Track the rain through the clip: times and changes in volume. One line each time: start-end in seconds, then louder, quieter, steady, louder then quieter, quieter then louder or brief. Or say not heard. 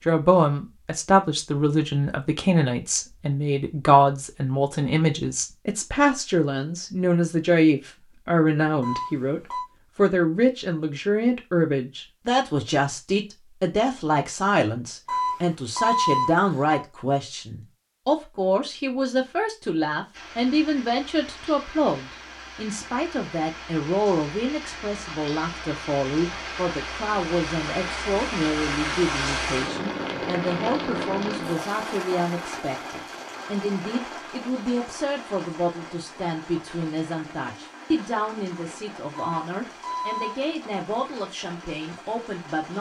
20.1-42.7 louder then quieter.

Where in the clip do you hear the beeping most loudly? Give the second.
16 s.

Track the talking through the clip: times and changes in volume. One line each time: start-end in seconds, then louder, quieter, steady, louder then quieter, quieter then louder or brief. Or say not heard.
0.1-42.7 quieter.